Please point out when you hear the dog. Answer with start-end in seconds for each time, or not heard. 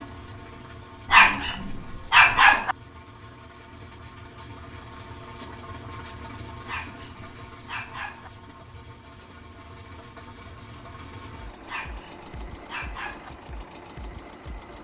1.1-2.8, 6.7-8.3, 11.7-13.3.